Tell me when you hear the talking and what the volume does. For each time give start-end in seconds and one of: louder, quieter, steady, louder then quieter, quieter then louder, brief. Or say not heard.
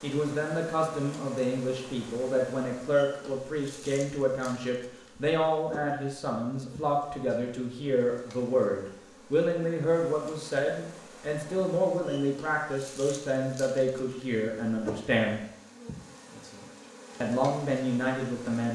0.0-15.4 steady
17.2-18.7 brief.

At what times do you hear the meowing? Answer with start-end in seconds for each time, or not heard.
not heard.